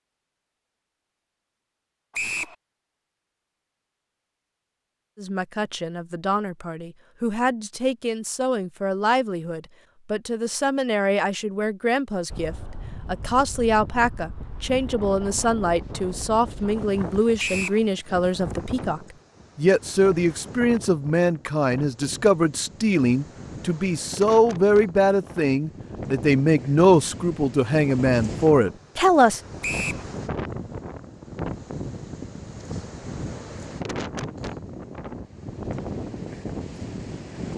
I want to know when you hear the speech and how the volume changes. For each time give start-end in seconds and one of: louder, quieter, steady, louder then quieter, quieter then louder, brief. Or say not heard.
5.2-29.4 louder.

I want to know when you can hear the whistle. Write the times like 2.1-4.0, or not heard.
2.1-2.5, 17.4-17.8, 29.6-30.1.